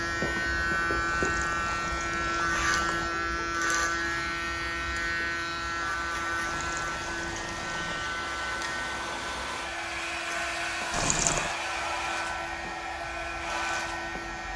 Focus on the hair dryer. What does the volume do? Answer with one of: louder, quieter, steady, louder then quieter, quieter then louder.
louder.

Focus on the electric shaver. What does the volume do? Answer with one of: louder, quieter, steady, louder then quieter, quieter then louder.
quieter.